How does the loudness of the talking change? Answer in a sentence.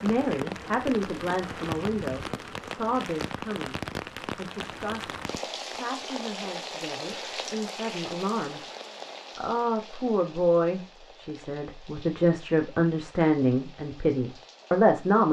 The loudness of the talking goes down, then up.